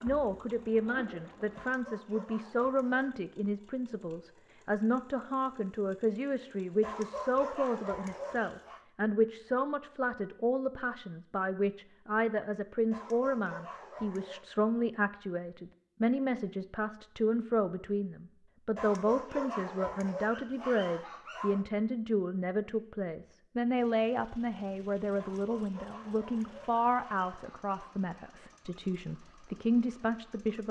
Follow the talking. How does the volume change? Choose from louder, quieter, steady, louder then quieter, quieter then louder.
steady.